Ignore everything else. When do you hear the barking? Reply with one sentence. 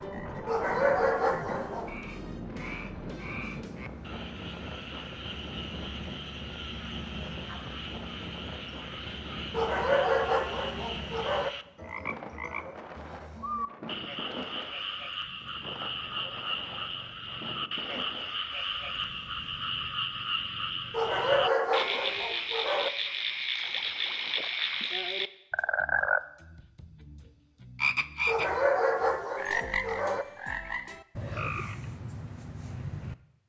The barking can be heard from 0.5 to 1.9 s, from 9.5 to 11.5 s, from 20.9 to 22.9 s and from 28.2 to 30.2 s.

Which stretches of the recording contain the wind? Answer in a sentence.
The wind can be heard from 0.0 to 19.9 s.